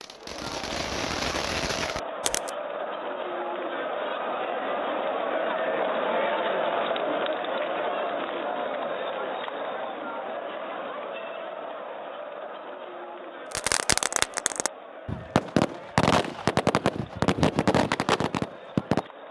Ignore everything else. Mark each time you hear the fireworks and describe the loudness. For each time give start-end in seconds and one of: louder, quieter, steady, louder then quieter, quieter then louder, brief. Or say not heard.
0.0-2.5 brief
13.5-19.1 steady.